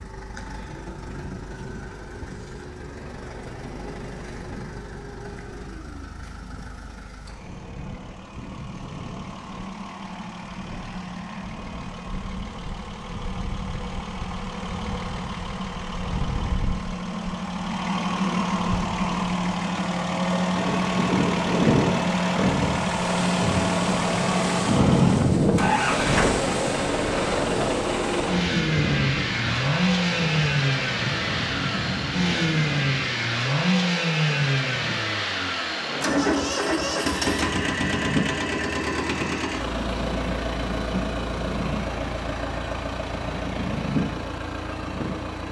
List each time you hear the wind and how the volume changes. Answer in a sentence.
You can hear the wind from 20.5 to 45.4 s, getting quieter.